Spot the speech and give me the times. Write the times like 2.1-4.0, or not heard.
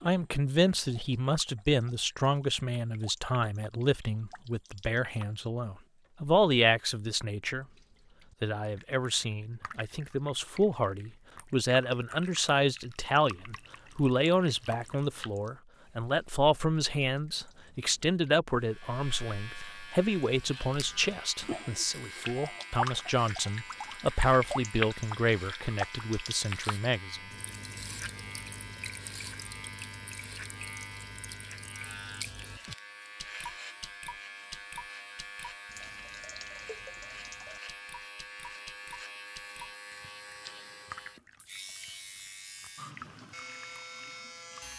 0.0-7.7, 8.4-27.3.